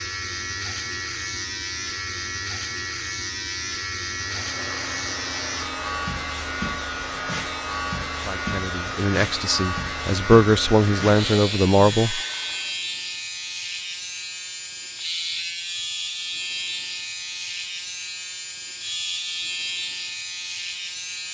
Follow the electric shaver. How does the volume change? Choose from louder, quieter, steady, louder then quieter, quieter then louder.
steady.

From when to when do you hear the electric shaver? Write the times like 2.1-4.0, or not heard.
0.0-21.3.